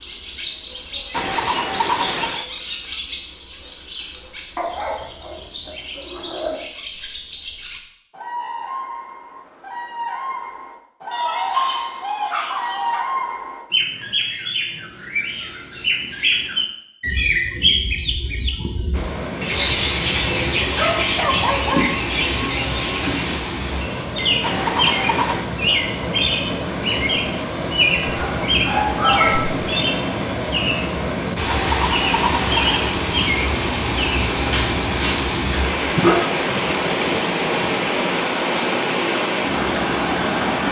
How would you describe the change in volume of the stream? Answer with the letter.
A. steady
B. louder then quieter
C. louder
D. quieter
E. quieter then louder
C.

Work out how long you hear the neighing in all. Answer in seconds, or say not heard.
4 s.